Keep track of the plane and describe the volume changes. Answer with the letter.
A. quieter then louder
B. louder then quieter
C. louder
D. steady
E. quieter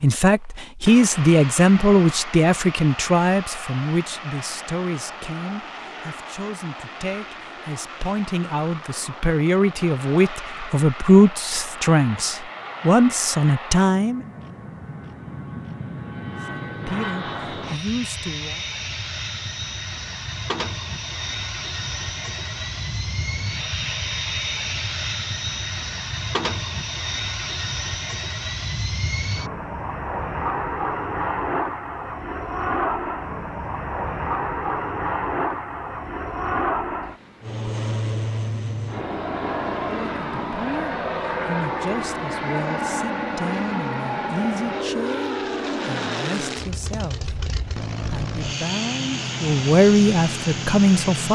C.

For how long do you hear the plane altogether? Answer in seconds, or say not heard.
51 s.